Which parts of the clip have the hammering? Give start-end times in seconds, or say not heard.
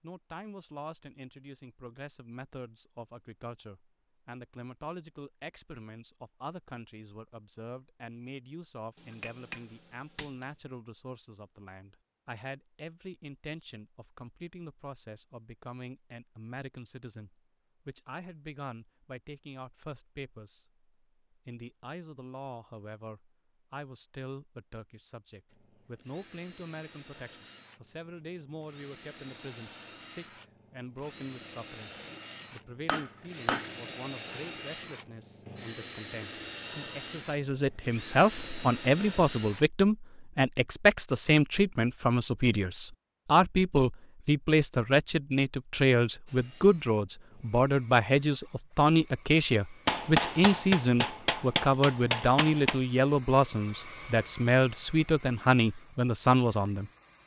8.9-10.4, 32.9-33.7, 49.9-52.8.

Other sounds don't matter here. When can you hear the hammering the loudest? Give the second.
50 s.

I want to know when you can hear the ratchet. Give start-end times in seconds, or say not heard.
not heard.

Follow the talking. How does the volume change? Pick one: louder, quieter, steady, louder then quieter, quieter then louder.
louder.